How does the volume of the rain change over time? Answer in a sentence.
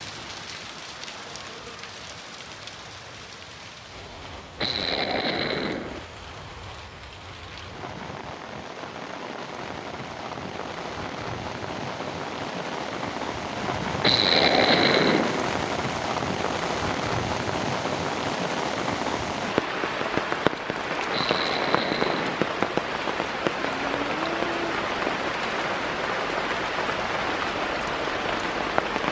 The loudness of the rain goes up.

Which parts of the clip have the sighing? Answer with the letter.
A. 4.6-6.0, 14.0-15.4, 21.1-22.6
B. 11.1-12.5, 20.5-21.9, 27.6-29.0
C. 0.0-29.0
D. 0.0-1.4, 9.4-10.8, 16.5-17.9
A.